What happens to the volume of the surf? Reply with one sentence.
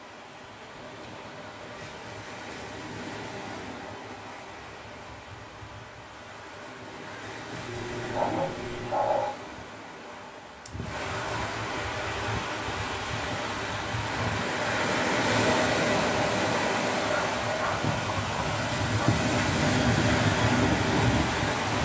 The loudness of the surf goes up.